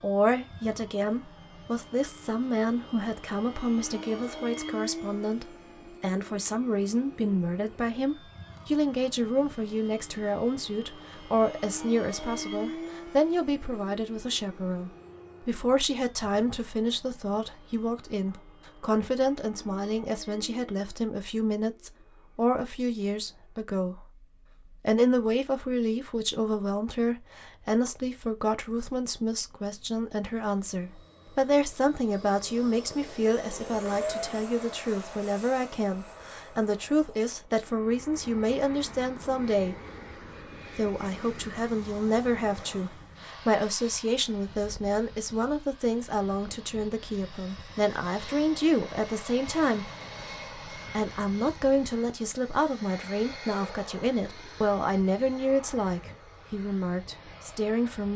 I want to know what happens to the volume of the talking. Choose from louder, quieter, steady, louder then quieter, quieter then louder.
steady.